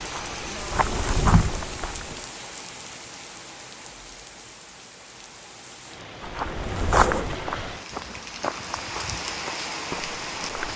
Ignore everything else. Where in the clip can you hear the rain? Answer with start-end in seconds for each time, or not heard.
0.0-10.7.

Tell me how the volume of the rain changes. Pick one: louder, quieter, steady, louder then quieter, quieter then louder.
quieter then louder.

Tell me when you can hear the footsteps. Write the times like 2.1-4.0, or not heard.
0.0-2.3, 6.2-10.7.